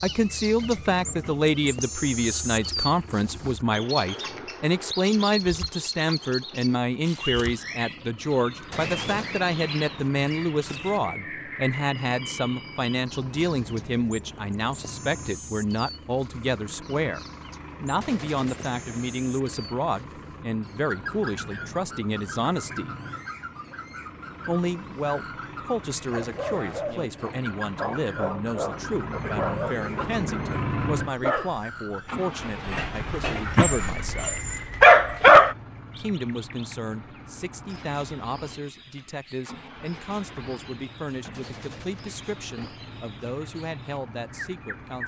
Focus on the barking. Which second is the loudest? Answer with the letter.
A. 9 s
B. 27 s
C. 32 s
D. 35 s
D.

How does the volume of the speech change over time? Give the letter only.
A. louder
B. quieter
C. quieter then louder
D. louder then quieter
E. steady
B.